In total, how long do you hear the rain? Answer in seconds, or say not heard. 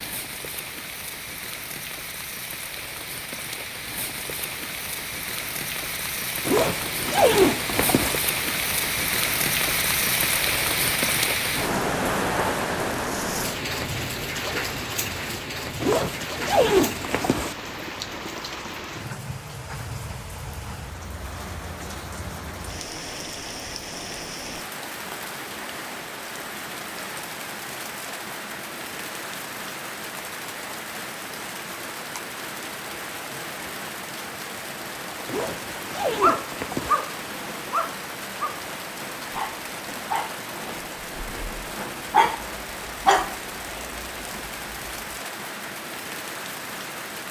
47 s.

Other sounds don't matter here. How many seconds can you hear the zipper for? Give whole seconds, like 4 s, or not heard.
5 s.